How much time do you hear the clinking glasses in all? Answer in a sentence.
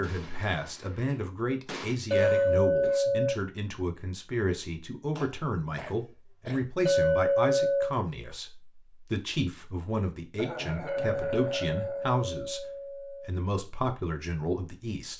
You can hear the clinking glasses for 5 seconds altogether.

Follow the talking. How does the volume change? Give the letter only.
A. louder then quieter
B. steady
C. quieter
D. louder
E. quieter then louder
B.